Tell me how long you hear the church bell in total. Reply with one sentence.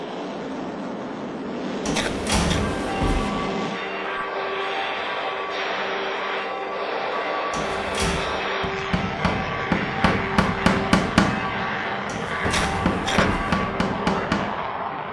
The church bell can be heard for 12 seconds in total.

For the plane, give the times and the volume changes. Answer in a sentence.
The plane can be heard from 0.0 to 15.0 s, at a steady volume.